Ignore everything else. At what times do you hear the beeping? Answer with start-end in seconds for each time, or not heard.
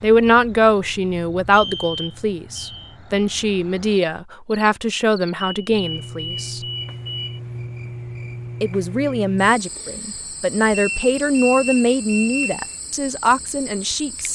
1.5-3.0, 5.4-7.4, 10.7-12.8.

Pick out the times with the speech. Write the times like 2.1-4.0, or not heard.
0.0-6.6, 8.6-14.3.